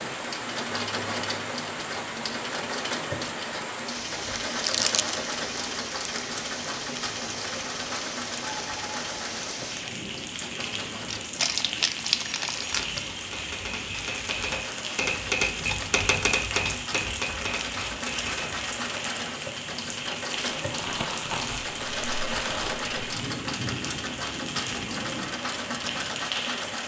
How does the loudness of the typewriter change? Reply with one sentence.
The loudness of the typewriter goes up, then down.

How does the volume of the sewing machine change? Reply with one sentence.
The volume of the sewing machine goes down, then up.